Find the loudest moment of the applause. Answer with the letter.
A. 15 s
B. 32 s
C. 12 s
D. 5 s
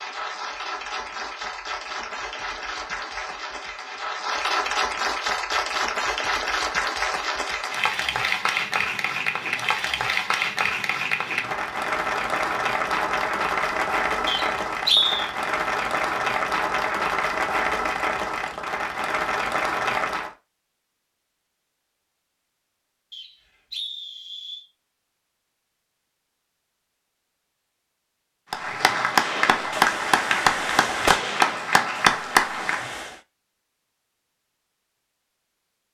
B.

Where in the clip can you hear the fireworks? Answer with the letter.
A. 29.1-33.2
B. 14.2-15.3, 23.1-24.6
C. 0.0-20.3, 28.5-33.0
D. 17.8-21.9
A.